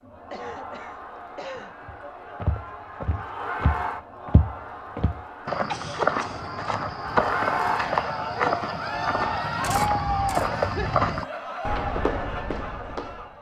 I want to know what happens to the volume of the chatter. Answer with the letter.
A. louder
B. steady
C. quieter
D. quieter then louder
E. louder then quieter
E.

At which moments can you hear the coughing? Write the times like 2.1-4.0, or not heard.
0.3-1.8, 5.7-6.5, 10.4-10.9.